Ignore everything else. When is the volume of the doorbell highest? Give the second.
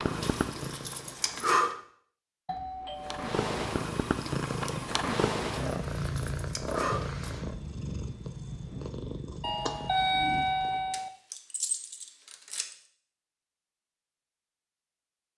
10 s.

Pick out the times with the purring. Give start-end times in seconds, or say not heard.
0.0-1.8, 3.0-10.9.